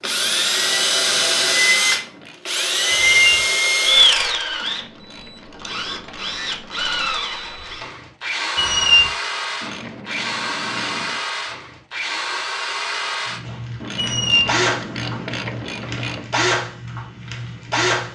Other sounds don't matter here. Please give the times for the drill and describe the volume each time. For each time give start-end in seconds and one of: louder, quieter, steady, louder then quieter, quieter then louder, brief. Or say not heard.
0.0-18.1 quieter.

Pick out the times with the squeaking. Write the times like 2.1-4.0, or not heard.
2.9-3.4, 8.6-9.1, 13.9-14.5.